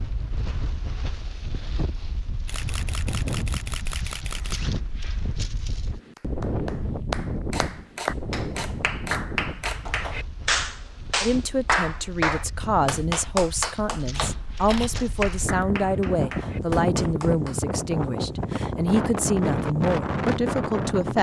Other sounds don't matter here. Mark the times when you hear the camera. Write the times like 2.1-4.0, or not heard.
2.5-4.6, 7.5-9.9, 14.1-15.1.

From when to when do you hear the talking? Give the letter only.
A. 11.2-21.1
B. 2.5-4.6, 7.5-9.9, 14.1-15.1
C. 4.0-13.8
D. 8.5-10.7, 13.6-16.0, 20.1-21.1
A.